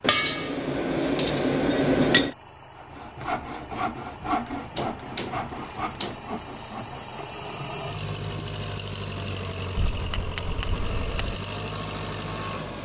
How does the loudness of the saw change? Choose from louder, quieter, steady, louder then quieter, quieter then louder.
quieter.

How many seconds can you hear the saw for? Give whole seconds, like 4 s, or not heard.
5 s.